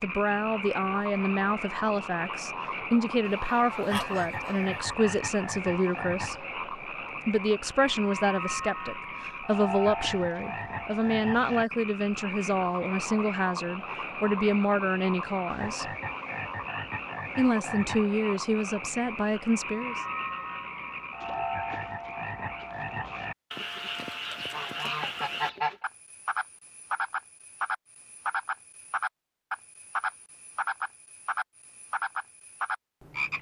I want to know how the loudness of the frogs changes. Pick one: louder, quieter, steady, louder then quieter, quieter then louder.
steady.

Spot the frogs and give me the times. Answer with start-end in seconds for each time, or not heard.
0.0-33.3.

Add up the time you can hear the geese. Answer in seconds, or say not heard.
4 s.